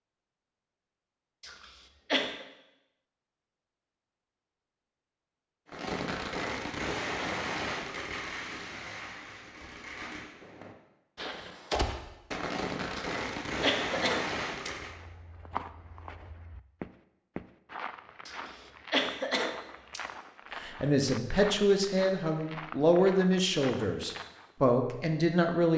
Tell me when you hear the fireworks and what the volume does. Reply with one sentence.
You can hear the fireworks from 5.7 to 14.9 s, getting quieter then louder.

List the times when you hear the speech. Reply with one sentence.
The speech can be heard from 20.6 to 25.7 s.